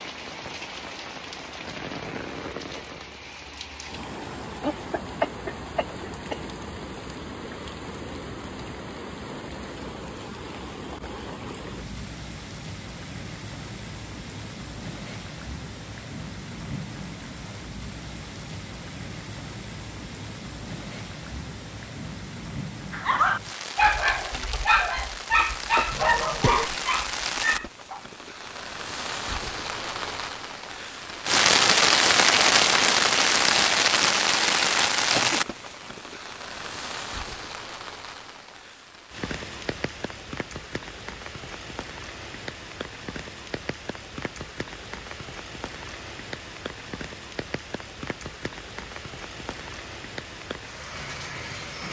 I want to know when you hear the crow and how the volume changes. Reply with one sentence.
You can't hear the crow here.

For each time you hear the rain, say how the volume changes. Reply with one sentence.
The rain can be heard from 0.0 to 51.8 s, getting louder then quieter.